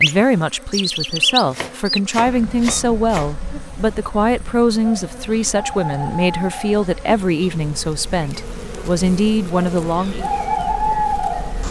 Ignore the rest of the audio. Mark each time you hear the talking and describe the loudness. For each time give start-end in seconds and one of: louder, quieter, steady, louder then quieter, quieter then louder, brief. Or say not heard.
0.0-10.3 steady.